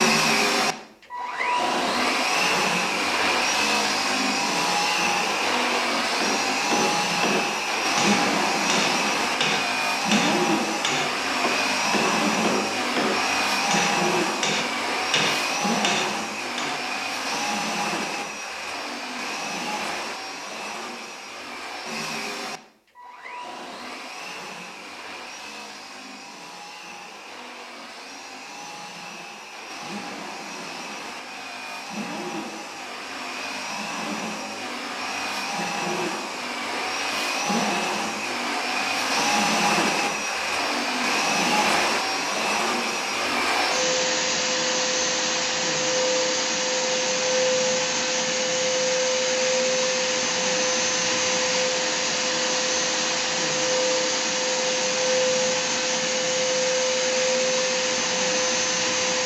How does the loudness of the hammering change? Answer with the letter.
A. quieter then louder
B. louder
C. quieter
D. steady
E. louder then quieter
D.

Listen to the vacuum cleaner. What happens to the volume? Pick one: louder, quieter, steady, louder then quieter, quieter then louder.
quieter then louder.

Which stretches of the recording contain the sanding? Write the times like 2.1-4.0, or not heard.
not heard.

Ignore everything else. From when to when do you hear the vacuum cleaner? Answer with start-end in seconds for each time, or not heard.
0.0-59.2.